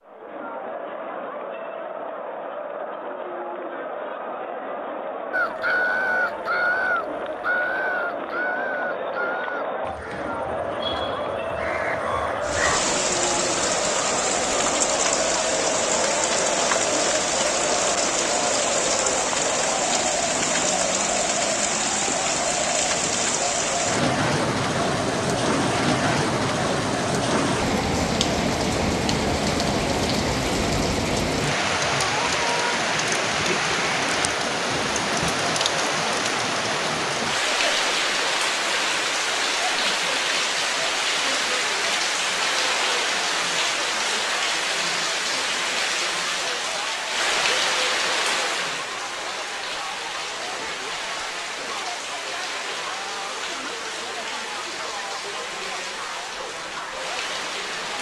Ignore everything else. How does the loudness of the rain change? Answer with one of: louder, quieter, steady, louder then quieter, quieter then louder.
quieter.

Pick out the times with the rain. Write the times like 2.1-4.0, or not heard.
12.4-57.9.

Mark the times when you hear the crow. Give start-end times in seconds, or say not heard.
5.3-12.8.